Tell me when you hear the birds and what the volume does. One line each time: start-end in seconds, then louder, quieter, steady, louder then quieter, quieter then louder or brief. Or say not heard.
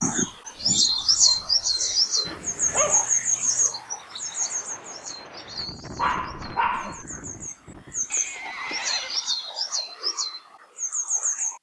0.0-11.5 quieter then louder.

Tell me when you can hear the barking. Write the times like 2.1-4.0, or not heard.
2.2-3.0, 6.0-7.0.